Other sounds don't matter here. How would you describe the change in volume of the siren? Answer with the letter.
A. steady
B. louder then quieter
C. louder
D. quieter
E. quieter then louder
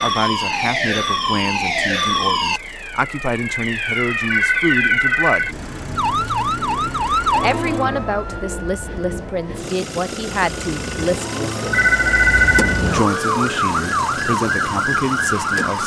E.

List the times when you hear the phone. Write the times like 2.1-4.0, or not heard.
4.3-5.5, 11.7-12.8.